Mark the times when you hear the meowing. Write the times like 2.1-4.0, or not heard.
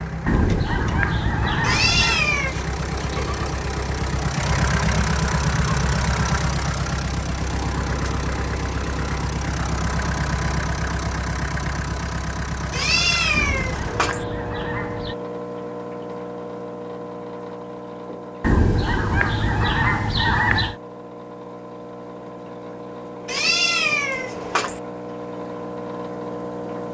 1.6-2.5, 12.7-14.2, 23.2-24.8.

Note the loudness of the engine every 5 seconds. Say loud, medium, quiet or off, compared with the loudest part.
loud, loud, loud, medium, medium, medium.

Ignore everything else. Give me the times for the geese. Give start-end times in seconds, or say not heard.
0.2-2.2, 13.3-15.2, 18.4-20.8.